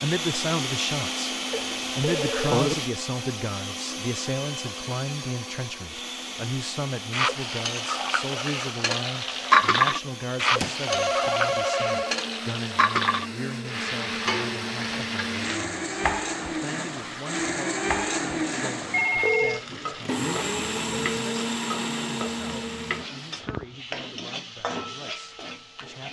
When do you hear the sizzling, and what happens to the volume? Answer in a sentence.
The sizzling can be heard from 7.1 to 26.0 s, getting quieter.